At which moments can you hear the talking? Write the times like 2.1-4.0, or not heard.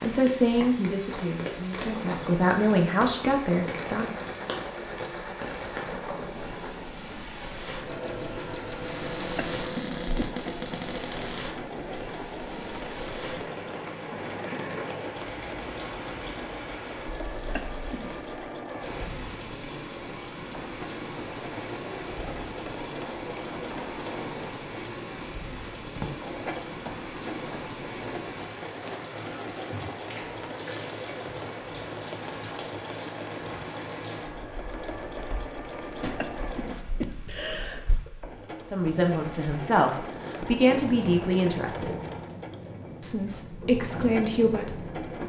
0.0-4.2, 38.7-42.0, 43.0-45.0.